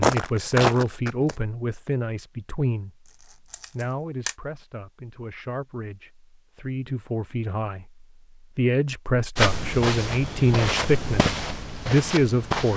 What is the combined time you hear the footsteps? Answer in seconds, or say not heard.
5 s.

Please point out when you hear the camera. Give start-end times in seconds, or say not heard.
3.0-4.3.